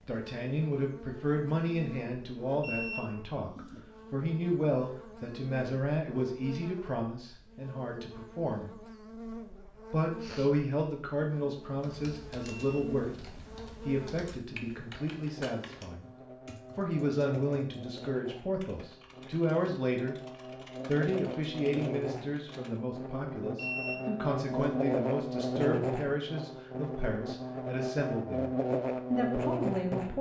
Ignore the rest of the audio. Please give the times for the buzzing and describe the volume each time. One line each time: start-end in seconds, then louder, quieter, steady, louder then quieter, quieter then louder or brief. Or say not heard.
0.0-30.1 louder.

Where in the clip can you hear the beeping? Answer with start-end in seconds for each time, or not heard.
2.6-3.8, 12.4-13.6, 23.6-24.8.